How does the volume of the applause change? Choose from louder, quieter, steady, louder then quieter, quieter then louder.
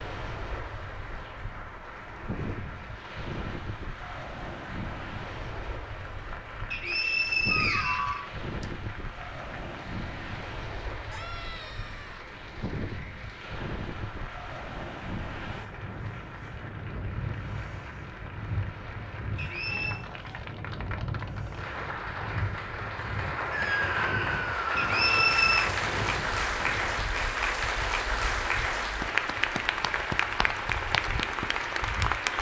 louder.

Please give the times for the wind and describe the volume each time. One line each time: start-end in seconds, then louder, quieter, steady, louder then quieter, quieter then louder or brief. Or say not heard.
0.0-32.3 steady.